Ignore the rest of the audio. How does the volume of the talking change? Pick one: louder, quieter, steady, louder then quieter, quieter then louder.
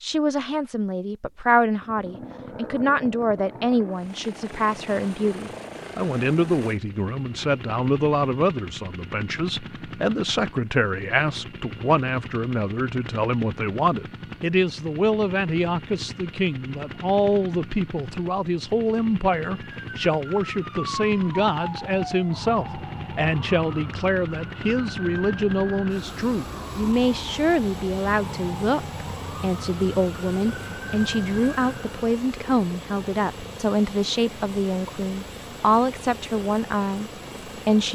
steady.